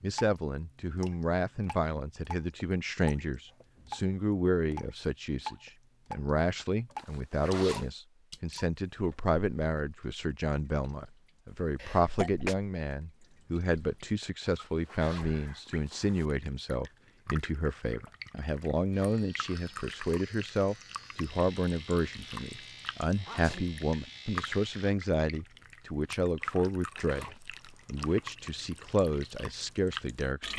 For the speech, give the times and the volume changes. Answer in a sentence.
The speech can be heard from 0.0 to 30.5 s, at a steady volume.